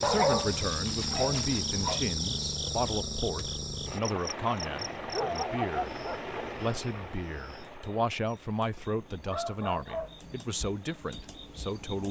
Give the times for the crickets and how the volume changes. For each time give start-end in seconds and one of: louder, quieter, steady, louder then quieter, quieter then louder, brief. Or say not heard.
0.0-12.0 quieter then louder.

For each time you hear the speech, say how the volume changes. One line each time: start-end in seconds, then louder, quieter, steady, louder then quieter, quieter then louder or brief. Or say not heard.
0.0-12.0 steady.